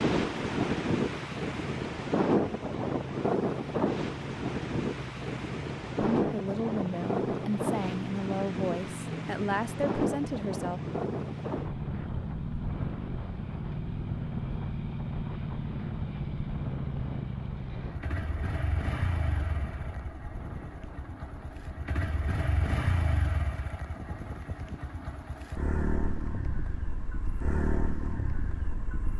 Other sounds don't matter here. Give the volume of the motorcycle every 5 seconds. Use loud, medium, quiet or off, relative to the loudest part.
medium, loud, loud, loud, loud, loud.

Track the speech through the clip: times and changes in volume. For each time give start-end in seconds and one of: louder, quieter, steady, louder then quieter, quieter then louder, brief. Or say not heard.
6.2-10.8 steady.